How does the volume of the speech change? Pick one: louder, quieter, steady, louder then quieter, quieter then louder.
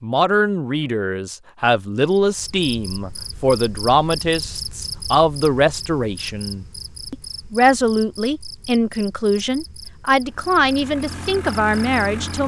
steady.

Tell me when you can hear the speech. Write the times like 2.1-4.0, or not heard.
0.0-12.4.